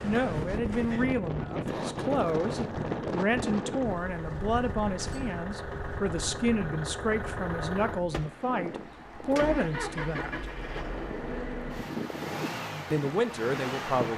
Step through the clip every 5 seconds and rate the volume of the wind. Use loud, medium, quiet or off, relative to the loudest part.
loud, medium, medium.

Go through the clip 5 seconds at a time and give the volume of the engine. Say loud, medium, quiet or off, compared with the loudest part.
medium, loud, loud.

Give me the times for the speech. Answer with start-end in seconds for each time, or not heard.
0.0-10.4, 12.9-14.1.